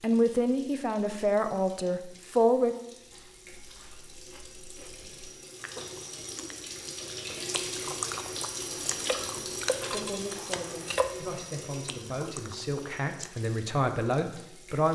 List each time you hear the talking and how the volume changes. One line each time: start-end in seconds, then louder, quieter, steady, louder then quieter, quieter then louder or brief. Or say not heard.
0.0-2.8 brief
9.8-14.8 louder.